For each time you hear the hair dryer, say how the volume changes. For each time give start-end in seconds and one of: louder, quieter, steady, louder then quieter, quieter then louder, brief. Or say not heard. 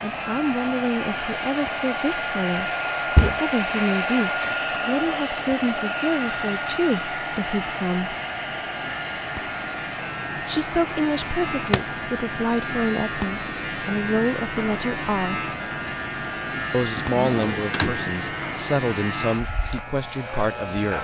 0.0-20.9 quieter.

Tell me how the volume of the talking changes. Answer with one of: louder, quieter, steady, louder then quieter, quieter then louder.
steady.